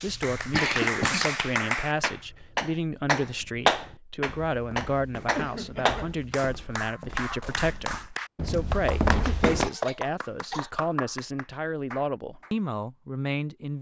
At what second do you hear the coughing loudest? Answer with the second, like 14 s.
1 s.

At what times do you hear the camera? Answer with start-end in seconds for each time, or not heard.
not heard.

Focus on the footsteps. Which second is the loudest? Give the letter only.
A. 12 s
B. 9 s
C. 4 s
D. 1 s
B.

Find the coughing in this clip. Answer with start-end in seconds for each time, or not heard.
0.1-1.3, 5.3-6.2, 9.2-10.7.